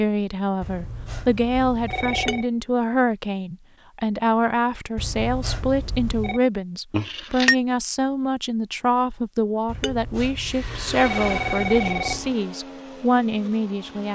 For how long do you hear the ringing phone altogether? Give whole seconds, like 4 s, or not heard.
6 s.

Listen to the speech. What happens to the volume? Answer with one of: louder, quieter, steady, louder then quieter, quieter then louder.
steady.